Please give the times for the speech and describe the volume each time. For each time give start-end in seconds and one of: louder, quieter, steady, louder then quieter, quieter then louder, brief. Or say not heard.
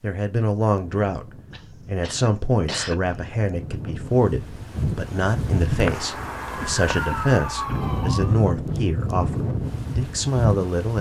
0.0-10.9 steady.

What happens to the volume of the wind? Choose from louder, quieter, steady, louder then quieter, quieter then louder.
louder.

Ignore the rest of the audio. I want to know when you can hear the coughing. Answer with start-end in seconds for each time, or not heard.
1.5-3.2, 6.5-7.9.